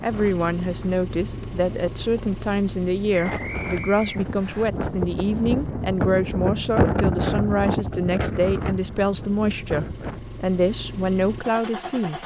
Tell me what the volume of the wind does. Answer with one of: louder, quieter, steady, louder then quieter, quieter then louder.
louder then quieter.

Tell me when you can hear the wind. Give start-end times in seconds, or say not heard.
0.0-10.4.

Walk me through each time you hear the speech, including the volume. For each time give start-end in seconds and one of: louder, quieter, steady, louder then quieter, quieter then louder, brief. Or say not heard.
0.0-12.2 steady.